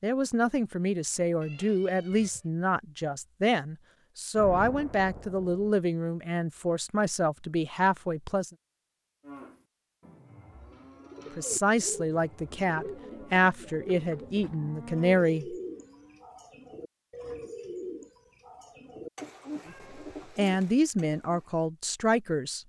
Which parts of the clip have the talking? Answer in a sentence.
You can hear the talking from 0.0 to 8.5 s, from 11.3 to 15.6 s and from 20.4 to 22.6 s.